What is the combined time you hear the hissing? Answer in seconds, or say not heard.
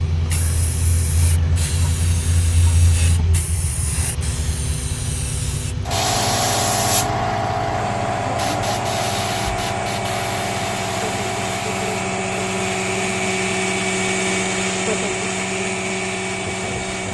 17 s.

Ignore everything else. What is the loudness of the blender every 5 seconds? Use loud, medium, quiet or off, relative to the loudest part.
quiet, medium, loud, loud.